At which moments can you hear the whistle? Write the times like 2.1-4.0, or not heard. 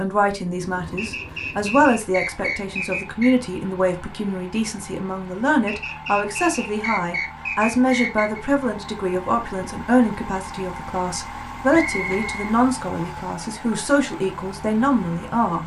0.9-3.4, 5.7-8.4, 11.7-13.1.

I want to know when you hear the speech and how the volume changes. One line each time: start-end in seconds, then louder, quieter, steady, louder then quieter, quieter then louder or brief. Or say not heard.
0.0-15.6 steady.